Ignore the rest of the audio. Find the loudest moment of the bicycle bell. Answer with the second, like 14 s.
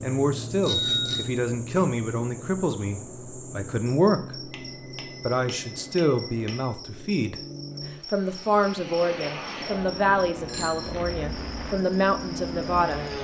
1 s.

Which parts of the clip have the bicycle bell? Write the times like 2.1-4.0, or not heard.
0.6-1.2, 4.5-6.8, 10.3-11.2.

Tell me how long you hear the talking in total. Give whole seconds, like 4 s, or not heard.
12 s.